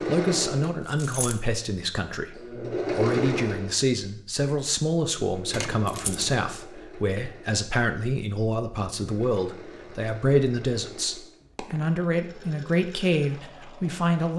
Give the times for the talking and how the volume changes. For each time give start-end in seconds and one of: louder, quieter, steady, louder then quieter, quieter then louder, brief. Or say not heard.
0.0-14.3 steady.